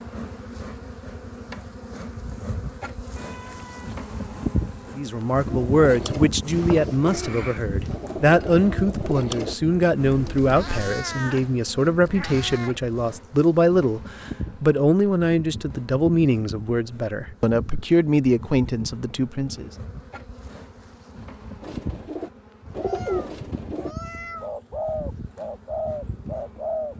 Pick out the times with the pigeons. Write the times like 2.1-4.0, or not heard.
5.5-10.9, 21.6-26.9.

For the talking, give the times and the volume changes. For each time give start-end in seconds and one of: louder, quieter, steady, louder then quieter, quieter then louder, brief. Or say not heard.
5.0-19.7 steady.